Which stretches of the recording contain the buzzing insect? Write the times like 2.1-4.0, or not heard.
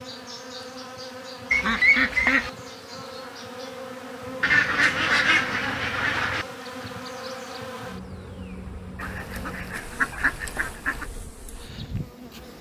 0.0-12.5.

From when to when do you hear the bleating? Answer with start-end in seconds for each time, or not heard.
not heard.